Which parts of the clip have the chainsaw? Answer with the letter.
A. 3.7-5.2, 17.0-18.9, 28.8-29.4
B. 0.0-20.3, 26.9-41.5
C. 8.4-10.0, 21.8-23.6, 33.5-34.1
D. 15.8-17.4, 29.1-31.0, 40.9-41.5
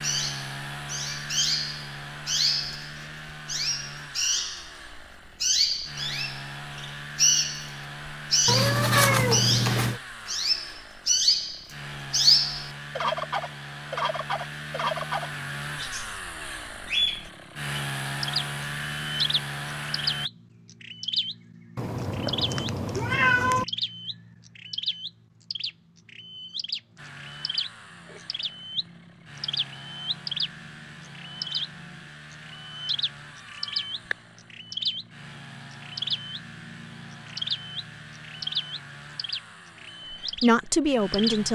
B.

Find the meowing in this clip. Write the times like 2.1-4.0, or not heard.
8.4-10.0, 21.8-23.6, 33.5-34.1.